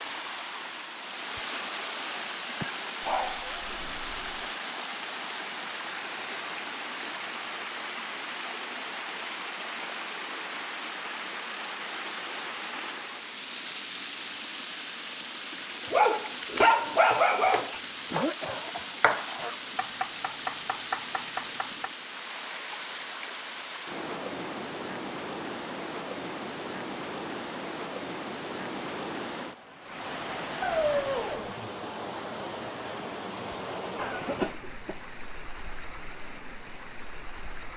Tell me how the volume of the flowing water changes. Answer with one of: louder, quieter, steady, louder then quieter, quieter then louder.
steady.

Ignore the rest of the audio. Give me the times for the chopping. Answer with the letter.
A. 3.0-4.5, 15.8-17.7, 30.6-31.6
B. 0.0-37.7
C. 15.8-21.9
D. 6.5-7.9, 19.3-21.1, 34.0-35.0
C.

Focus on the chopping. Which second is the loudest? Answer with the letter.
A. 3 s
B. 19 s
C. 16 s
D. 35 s
B.